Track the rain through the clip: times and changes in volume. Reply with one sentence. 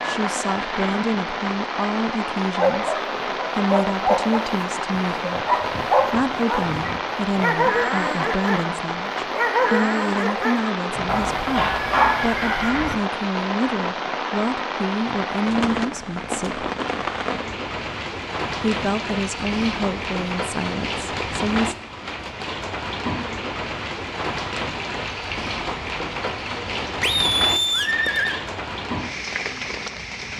You can hear the rain from 0.0 to 30.3 s, at a steady volume.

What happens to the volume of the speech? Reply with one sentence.
The loudness of the speech stays about the same.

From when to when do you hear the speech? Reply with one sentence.
The speech can be heard from 0.0 to 16.7 s and from 18.6 to 21.8 s.